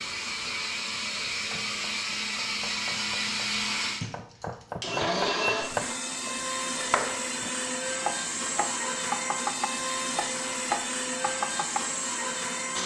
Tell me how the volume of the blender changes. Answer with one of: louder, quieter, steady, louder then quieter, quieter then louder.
steady.